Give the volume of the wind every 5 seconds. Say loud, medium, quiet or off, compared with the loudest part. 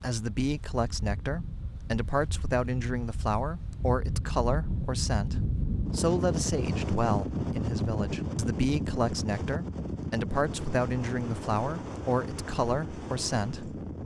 medium, loud, medium.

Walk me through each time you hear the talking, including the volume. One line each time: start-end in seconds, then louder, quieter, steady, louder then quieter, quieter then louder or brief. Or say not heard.
0.0-13.8 steady.